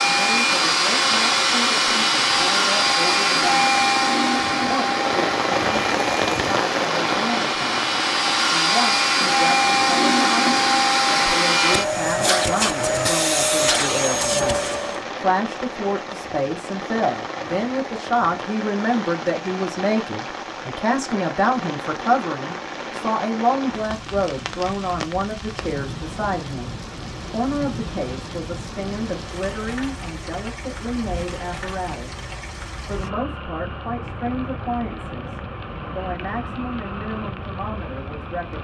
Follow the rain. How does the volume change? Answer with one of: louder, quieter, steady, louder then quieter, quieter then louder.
quieter.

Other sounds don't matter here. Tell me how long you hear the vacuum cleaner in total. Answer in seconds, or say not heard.
15 s.